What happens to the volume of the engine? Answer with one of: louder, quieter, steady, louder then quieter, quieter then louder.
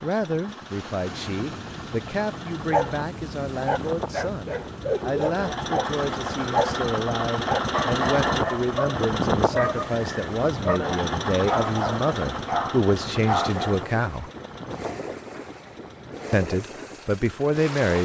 louder then quieter.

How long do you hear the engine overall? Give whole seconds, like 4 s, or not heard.
18 s.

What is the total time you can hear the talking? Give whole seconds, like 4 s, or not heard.
16 s.